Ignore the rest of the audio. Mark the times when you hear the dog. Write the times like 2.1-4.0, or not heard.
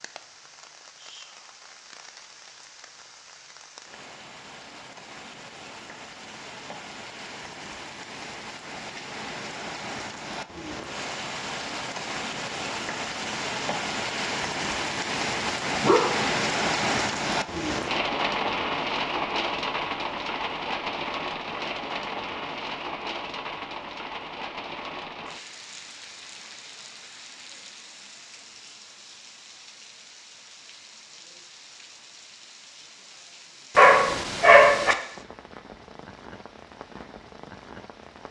14.9-16.3, 33.8-35.0.